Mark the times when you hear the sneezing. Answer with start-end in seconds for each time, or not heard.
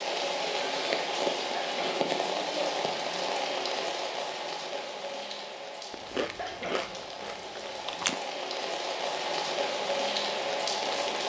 1.6-2.1, 6.3-7.0.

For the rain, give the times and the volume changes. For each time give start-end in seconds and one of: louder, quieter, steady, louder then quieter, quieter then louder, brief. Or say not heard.
0.0-11.2 quieter then louder.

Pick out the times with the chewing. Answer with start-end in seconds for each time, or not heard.
5.9-8.2.